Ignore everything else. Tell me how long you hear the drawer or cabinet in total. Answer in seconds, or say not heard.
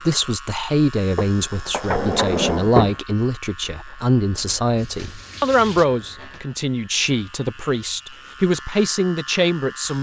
2 s.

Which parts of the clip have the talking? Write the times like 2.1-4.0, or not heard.
0.0-9.9.